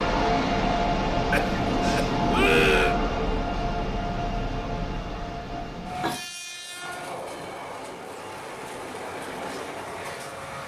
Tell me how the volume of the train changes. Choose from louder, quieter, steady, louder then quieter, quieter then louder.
quieter.